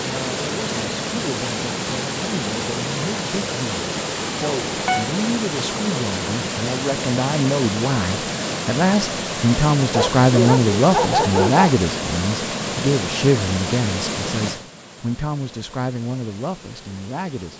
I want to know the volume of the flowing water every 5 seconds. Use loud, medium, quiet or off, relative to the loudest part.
loud, loud, loud, quiet.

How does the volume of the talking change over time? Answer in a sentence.
The loudness of the talking goes up, then down.